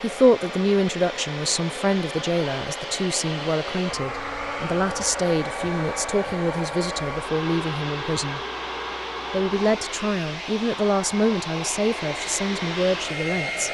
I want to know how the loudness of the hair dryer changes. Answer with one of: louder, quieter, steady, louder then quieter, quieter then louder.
steady.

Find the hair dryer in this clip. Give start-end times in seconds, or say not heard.
0.0-13.6.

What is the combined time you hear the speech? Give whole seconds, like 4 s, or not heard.
13 s.